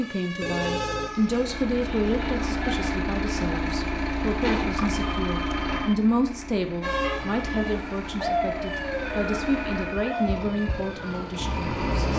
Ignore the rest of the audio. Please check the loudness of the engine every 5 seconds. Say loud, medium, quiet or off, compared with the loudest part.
loud, medium, loud.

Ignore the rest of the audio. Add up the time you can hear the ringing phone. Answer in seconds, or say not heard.
3 s.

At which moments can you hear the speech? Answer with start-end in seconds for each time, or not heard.
0.0-12.1.